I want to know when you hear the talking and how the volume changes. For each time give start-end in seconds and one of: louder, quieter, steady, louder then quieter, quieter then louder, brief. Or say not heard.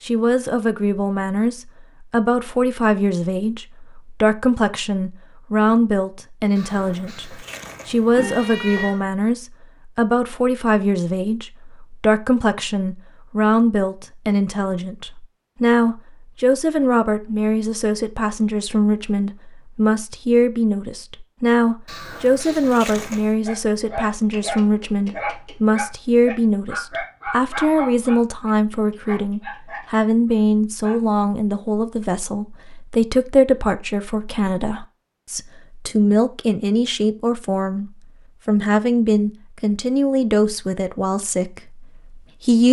0.0-42.6 steady.